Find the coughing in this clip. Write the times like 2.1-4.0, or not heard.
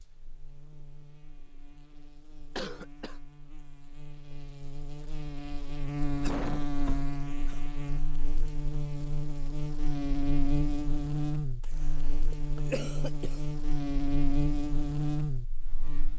2.5-3.2, 6.2-7.7, 11.6-13.4.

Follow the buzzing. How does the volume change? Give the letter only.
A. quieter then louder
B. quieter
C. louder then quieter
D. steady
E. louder
E.